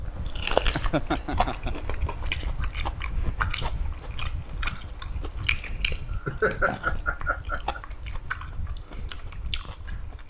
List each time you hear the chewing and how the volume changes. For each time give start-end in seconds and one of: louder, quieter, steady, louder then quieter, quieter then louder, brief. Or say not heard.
0.0-10.2 quieter.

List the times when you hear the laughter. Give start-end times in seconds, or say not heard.
0.7-1.8, 6.1-7.8.